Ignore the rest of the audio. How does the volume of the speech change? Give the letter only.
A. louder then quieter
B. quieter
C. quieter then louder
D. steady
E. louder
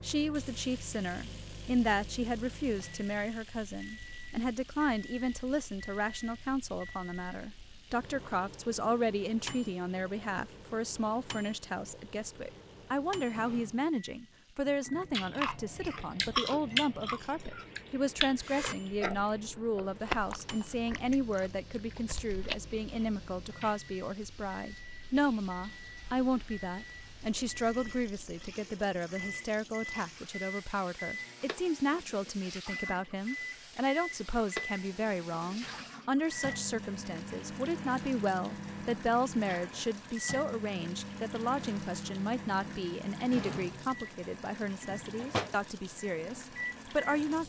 D.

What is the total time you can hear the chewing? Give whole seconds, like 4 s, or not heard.
8 s.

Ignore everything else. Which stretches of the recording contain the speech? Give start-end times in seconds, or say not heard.
0.0-47.4.